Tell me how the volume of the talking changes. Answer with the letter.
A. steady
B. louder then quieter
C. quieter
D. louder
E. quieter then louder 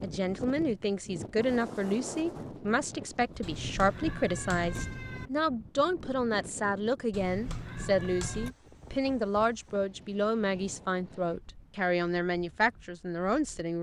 A.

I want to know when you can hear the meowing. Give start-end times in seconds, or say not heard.
3.4-5.3, 7.1-8.6.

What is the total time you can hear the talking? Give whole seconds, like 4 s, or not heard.
14 s.